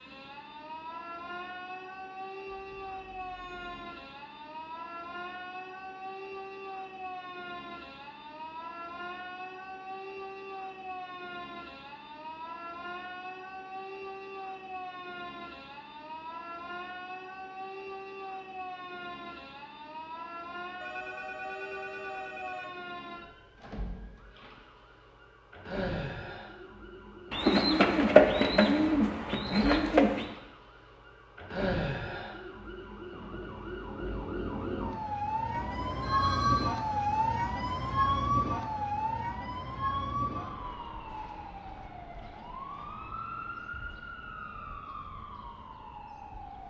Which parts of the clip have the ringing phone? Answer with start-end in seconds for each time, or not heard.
2.5-3.6, 20.8-22.8, 35.5-36.8.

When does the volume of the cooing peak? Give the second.
28 s.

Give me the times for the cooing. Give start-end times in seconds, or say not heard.
27.3-30.3.